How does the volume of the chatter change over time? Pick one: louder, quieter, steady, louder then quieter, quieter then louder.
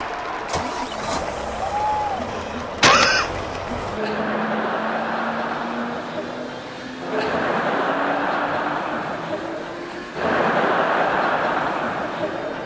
louder.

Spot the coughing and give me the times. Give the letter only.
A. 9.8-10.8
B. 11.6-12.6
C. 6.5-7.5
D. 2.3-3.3
D.